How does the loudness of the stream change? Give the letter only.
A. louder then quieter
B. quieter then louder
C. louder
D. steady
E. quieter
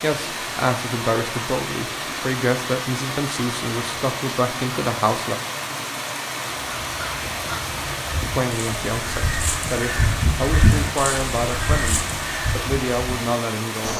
D.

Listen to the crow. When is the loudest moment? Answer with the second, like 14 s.
11 s.